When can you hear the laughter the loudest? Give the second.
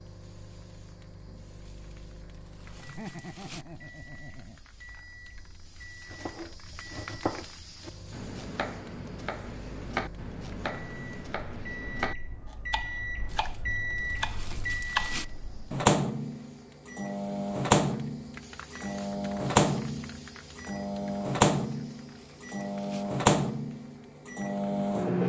3 s.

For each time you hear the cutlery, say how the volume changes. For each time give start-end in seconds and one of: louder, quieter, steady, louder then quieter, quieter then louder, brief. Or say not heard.
not heard.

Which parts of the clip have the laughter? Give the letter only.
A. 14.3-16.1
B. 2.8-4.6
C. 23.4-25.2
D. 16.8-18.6
B.